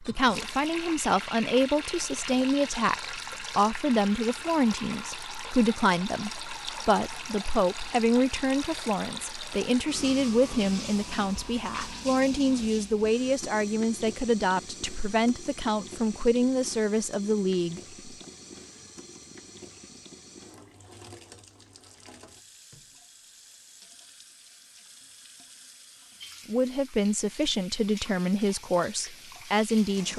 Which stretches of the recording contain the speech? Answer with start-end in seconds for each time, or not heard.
0.0-17.9, 26.4-30.1.